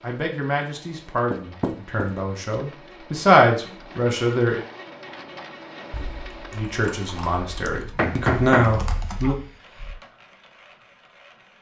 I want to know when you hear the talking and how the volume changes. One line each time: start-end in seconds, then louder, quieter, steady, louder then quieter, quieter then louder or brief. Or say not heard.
0.0-4.6 louder then quieter
6.5-9.3 brief.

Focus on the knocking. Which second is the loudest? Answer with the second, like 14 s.
8 s.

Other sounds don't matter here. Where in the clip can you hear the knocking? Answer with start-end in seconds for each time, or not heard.
1.3-2.1, 8.0-9.3.